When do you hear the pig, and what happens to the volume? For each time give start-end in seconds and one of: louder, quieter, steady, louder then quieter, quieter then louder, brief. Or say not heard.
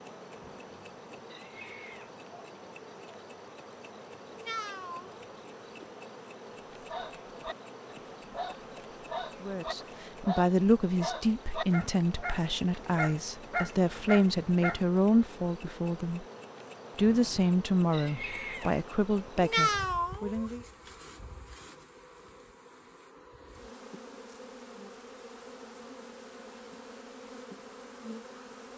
not heard.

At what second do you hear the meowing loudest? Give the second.
20 s.